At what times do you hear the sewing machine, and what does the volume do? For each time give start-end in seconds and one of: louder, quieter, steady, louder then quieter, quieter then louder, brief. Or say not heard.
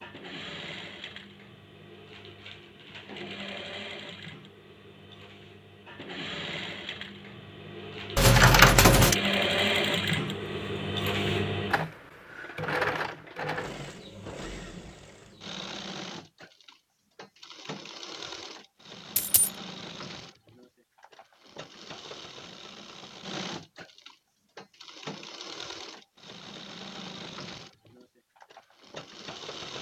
0.0-29.7 louder then quieter.